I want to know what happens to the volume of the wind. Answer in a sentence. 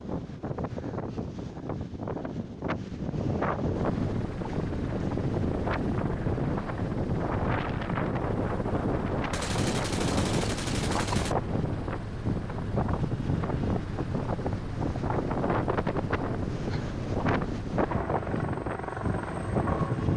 The volume of the wind stays about the same.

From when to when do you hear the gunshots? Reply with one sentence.
The gunshots can be heard from 9.3 to 11.3 s.